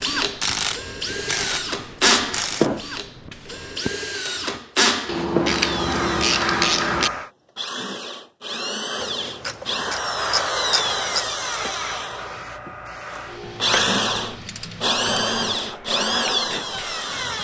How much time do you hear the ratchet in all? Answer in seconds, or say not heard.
9 s.